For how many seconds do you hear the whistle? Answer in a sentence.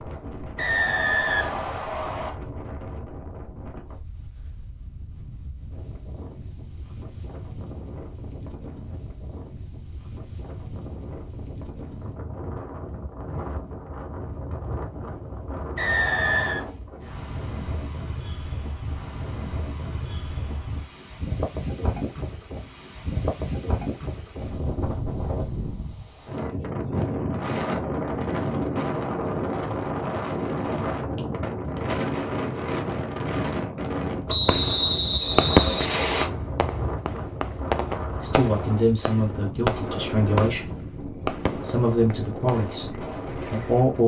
You can hear the whistle for 5 seconds altogether.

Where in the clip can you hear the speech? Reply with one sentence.
You can hear the speech from 38.2 to 40.9 s, from 41.6 to 42.9 s and from 43.5 to 44.0 s.